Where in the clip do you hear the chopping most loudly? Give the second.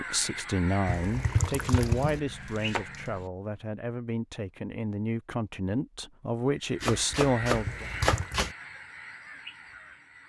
8 s.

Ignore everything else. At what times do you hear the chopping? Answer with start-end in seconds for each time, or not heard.
1.4-3.3, 6.8-8.6.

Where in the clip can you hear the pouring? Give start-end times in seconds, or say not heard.
0.8-2.2, 7.6-8.3.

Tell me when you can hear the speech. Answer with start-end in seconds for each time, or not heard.
0.0-7.8.